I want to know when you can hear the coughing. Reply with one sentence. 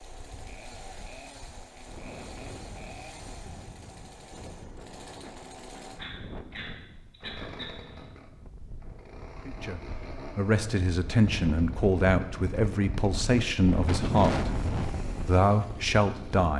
You can hear the coughing from 5.8 to 8.1 s.